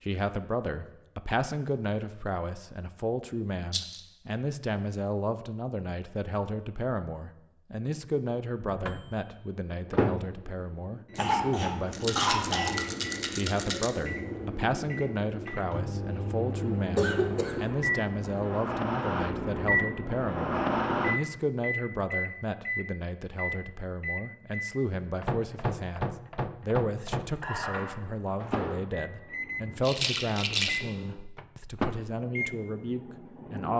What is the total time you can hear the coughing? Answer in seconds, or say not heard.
2 s.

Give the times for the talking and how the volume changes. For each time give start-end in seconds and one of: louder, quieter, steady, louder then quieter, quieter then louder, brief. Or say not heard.
0.0-33.7 steady.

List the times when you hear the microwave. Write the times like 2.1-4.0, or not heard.
8.7-33.7.